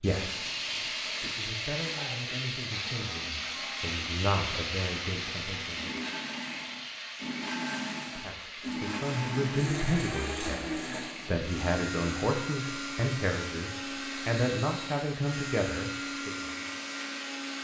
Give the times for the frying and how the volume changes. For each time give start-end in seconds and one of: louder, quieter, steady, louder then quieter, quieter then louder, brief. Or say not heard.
0.0-17.5 quieter.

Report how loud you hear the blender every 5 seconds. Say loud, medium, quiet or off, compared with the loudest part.
medium, loud, loud, loud.